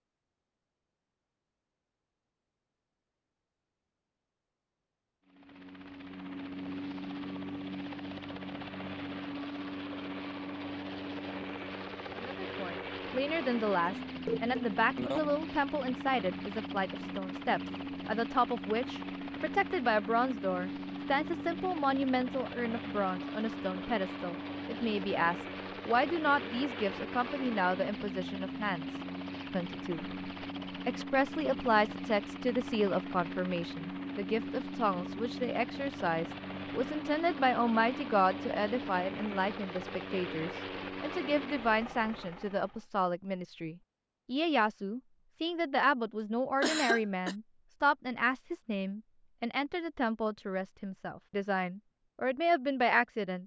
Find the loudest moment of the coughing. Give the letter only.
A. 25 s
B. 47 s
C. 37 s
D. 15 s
B.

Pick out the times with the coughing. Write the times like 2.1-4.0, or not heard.
14.1-15.3, 46.6-47.4.